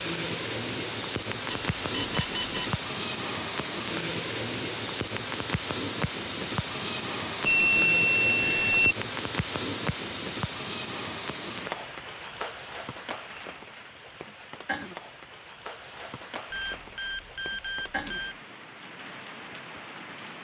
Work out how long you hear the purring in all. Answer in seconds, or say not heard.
not heard.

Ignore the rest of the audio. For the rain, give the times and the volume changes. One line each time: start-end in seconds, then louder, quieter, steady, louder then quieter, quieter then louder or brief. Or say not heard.
0.0-20.3 quieter.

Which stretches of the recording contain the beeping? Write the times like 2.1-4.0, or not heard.
1.5-2.8, 7.5-8.9, 16.5-18.4.